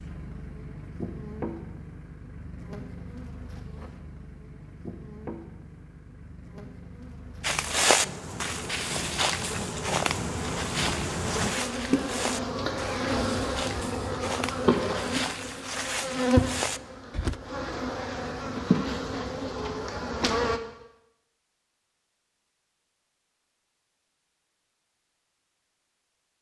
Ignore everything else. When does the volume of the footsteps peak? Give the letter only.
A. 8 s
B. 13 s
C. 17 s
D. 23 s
A.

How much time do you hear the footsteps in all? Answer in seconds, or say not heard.
10 s.